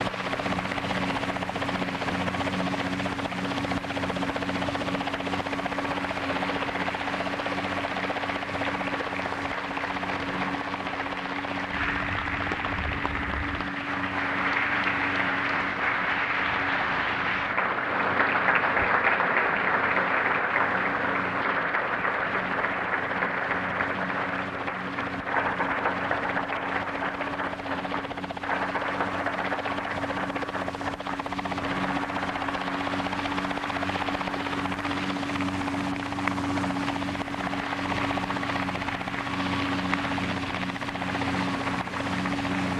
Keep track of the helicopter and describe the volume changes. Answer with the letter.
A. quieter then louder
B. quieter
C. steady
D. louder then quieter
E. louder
A.